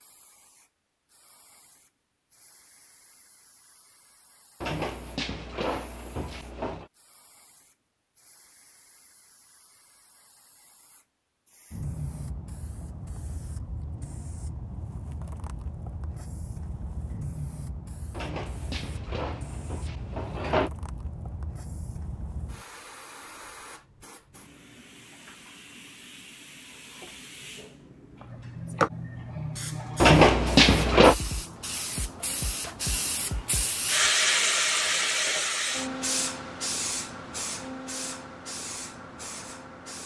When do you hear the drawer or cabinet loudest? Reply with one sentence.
The volume of the drawer or cabinet peaks at 30 seconds.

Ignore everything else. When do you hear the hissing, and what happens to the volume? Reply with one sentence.
You can hear the hissing from 0.0 to 40.0 s, getting louder.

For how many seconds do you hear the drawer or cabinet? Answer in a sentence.
The drawer or cabinet can be heard for 6 seconds in total.